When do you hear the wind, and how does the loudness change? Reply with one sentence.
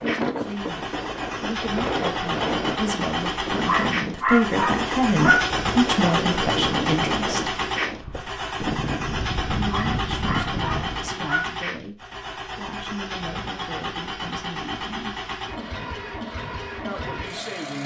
The wind can be heard from 0.0 to 11.2 s, at a steady volume.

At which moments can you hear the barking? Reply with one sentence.
You can hear the barking from 3.6 to 5.5 s and from 9.7 to 11.4 s.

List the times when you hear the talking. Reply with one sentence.
The talking can be heard from 0.0 to 7.5 s, from 9.6 to 15.2 s and from 16.9 to 17.8 s.